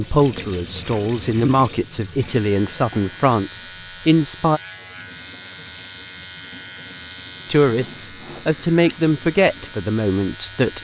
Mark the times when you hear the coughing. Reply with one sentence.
The coughing can't be heard in this clip.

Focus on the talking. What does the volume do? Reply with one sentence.
The loudness of the talking stays about the same.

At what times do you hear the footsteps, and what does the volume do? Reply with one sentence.
You can't hear the footsteps here.